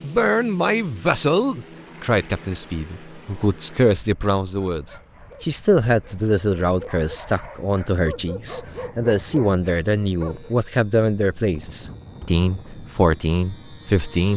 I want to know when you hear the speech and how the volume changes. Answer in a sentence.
The speech can be heard from 0.0 to 14.3 s, at a steady volume.